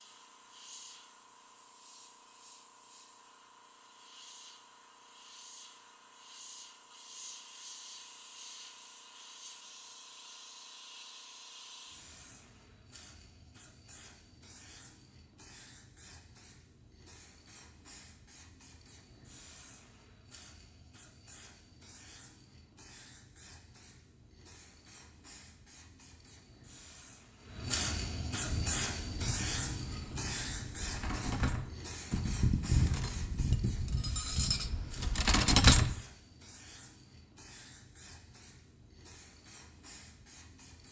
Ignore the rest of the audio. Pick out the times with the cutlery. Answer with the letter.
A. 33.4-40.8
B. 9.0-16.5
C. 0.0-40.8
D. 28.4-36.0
D.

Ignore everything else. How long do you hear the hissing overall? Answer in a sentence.
The hissing can be heard for 41 seconds in total.